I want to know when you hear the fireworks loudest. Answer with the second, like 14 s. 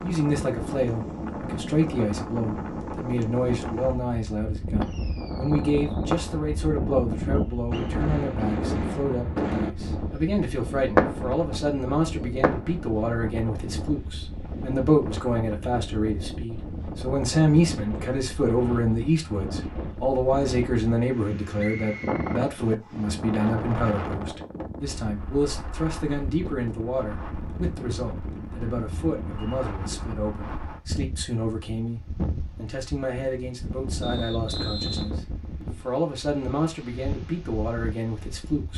11 s.